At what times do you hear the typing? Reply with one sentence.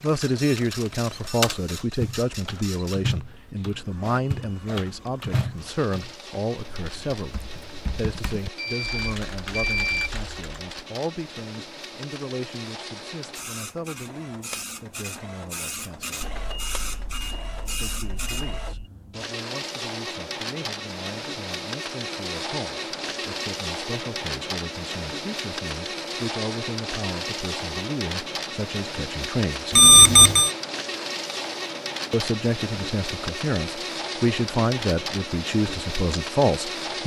The typing can be heard from 0.0 to 10.8 s.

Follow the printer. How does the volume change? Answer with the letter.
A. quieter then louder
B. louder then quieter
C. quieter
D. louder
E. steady
D.